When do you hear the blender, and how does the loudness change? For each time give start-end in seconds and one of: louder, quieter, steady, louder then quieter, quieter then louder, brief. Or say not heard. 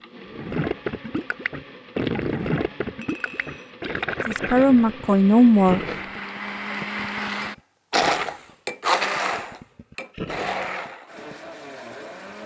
0.0-12.4 louder then quieter.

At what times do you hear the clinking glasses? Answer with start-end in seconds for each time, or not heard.
3.0-3.8.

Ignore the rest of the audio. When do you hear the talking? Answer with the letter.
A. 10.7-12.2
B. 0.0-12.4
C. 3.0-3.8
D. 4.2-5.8
D.